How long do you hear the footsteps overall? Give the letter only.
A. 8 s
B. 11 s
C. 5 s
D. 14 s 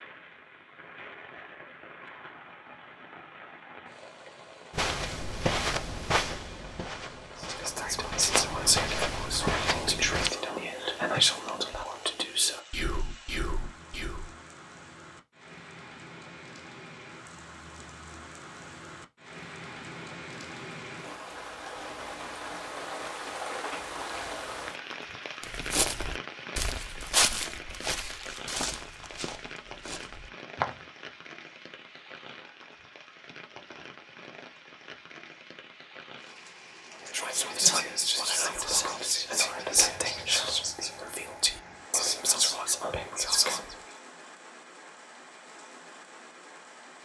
B.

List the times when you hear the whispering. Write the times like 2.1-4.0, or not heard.
7.3-14.3, 37.0-43.8.